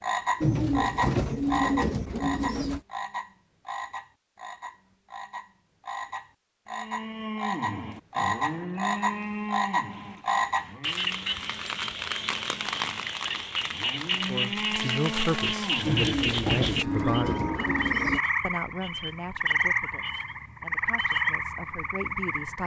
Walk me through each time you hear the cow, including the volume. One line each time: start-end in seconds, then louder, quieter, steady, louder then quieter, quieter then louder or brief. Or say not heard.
6.7-18.0 quieter then louder.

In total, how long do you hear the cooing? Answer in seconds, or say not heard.
5 s.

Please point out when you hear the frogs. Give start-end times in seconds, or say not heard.
0.0-22.6.